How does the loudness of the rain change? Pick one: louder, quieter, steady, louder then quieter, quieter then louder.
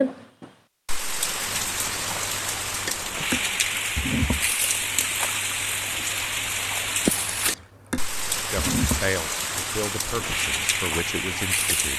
steady.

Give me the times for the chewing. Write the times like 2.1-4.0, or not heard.
1.4-11.9.